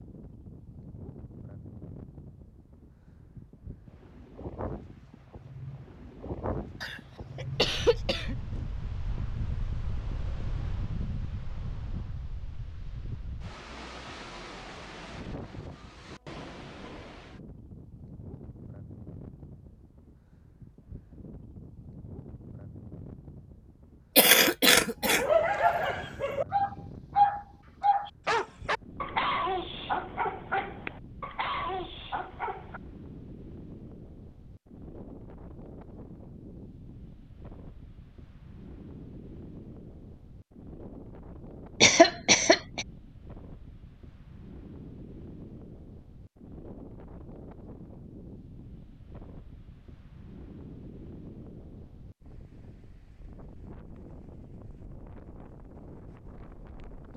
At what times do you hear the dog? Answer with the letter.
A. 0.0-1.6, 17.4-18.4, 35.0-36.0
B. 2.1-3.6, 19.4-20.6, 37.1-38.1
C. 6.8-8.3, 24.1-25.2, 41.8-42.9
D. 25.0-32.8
D.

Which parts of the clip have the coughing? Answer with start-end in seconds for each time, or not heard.
6.8-8.3, 24.1-25.2, 41.8-42.9.